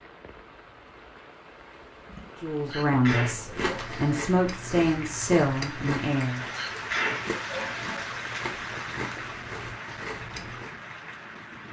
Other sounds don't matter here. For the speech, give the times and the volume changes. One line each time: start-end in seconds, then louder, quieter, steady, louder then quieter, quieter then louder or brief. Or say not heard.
2.4-6.4 steady.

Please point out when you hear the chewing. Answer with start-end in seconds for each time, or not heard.
3.1-10.7.